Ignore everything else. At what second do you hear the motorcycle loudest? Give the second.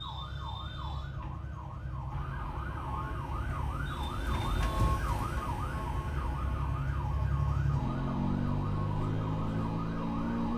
8 s.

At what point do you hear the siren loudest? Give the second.
5 s.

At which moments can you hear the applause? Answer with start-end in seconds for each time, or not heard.
not heard.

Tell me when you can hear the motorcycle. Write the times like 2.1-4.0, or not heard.
0.0-10.5.